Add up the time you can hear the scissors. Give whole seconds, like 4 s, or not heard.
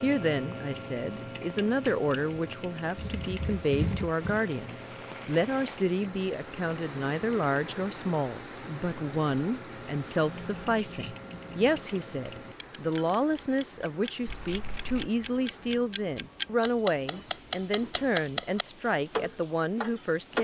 4 s.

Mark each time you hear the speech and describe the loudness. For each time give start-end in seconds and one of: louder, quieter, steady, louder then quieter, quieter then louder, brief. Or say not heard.
0.0-20.4 steady.